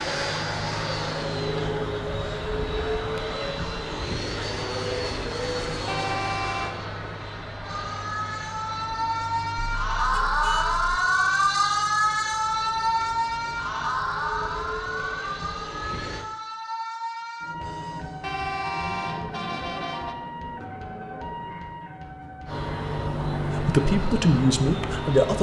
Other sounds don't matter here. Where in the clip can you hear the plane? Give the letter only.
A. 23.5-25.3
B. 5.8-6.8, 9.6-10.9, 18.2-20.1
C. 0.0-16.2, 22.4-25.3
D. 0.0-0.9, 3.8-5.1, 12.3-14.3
C.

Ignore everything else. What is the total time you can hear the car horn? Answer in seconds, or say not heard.
4 s.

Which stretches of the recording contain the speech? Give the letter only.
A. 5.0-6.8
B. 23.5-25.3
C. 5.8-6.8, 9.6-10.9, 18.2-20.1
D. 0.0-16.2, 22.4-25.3
B.